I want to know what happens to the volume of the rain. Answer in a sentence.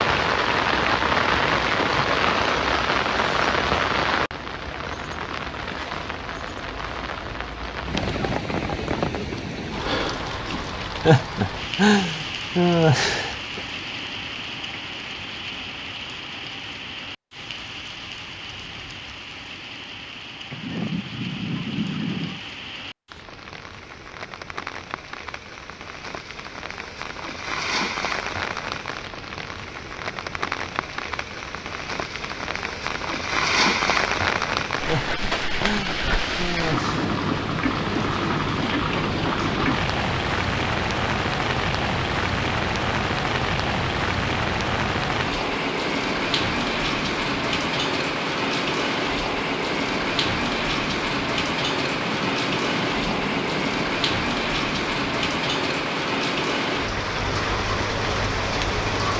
The loudness of the rain goes down, then up.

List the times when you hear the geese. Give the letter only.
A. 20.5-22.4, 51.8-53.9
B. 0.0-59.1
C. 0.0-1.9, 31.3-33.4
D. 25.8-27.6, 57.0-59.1
A.